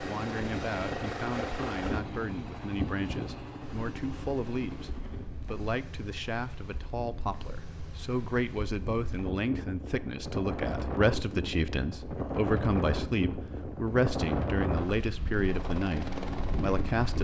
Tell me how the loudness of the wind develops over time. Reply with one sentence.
The loudness of the wind goes down, then up.